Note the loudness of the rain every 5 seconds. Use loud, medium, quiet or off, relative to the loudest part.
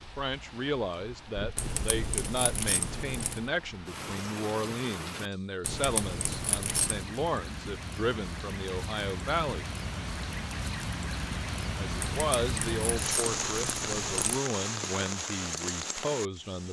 medium, medium, loud, loud.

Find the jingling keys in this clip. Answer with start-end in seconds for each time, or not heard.
1.6-3.5, 5.6-7.0, 12.0-14.4.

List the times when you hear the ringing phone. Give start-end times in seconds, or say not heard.
not heard.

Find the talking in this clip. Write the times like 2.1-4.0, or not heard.
0.0-9.7, 12.0-16.6.